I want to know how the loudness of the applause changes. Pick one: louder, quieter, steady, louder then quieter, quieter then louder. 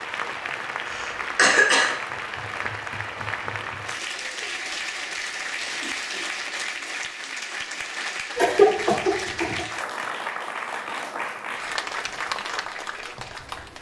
steady.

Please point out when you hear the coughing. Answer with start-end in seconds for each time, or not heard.
0.8-1.9, 8.3-9.7.